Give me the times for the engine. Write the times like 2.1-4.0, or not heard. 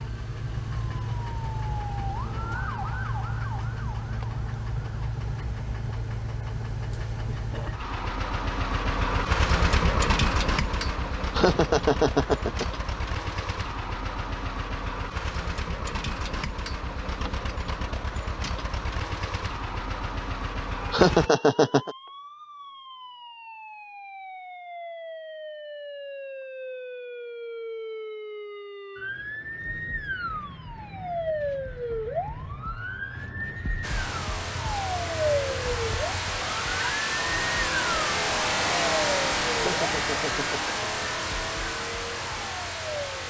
0.0-21.3, 33.8-43.2.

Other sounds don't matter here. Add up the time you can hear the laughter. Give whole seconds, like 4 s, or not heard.
4 s.